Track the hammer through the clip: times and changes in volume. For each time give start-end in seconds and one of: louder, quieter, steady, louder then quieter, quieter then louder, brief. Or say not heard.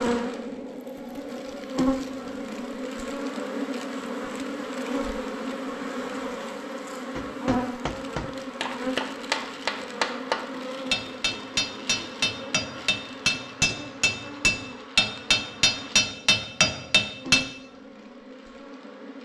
7.2-17.4 louder.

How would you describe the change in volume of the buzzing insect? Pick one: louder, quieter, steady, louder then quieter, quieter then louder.
quieter.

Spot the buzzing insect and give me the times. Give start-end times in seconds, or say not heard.
0.0-19.2.